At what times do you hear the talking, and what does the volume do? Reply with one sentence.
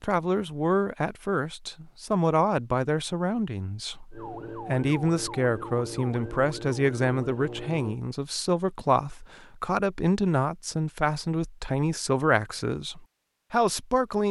You can hear the talking from 0.0 to 14.2 s, at a steady volume.